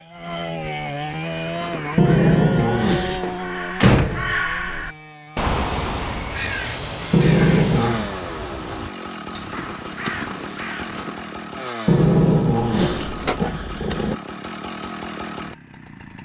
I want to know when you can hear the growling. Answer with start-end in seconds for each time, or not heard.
1.9-3.2, 7.1-8.1, 11.8-14.2.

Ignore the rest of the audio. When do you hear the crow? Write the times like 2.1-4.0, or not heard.
1.2-11.3.